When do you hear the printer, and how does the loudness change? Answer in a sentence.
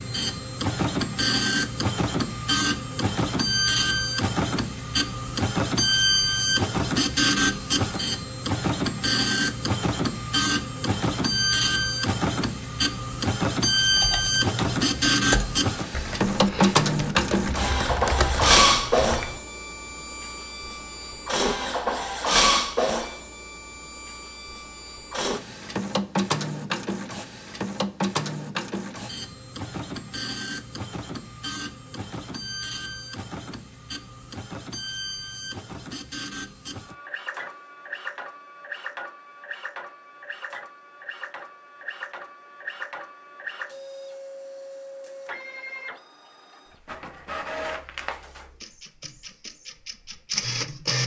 You can hear the printer from 0.0 to 51.0 s, getting quieter.